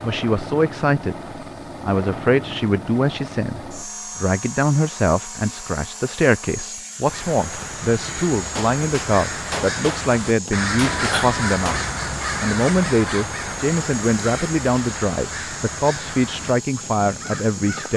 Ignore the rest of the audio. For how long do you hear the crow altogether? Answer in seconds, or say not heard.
11 s.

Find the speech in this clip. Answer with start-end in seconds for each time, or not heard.
0.0-1.1, 1.8-11.8, 12.4-17.9.